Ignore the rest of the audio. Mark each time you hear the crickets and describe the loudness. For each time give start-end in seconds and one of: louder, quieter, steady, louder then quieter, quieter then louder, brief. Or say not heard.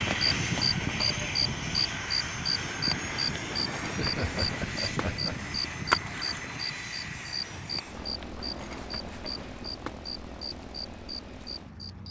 0.0-12.0 quieter.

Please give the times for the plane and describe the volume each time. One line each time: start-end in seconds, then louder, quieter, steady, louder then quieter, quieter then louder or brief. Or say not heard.
0.0-12.0 quieter.